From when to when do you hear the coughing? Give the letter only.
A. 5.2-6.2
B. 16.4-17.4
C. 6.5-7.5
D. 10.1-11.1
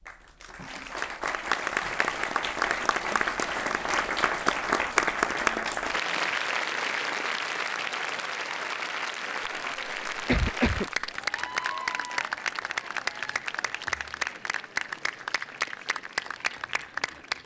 D.